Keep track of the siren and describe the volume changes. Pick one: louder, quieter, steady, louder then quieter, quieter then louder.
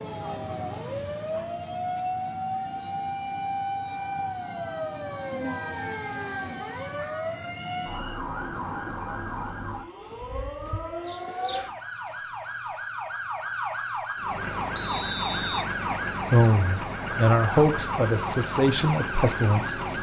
steady.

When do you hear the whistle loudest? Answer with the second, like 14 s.
15 s.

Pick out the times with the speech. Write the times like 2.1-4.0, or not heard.
16.3-19.8.